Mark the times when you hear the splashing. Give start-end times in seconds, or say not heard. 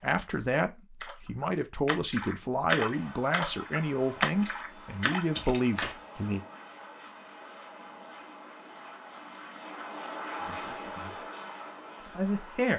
0.3-6.0.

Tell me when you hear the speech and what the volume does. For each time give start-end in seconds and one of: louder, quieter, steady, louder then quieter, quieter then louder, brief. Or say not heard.
0.0-6.4 steady
10.4-11.2 brief
12.0-12.7 brief.